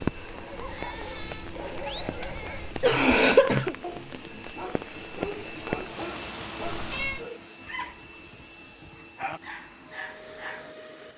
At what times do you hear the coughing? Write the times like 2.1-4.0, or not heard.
1.9-3.8.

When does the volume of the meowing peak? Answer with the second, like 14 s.
7 s.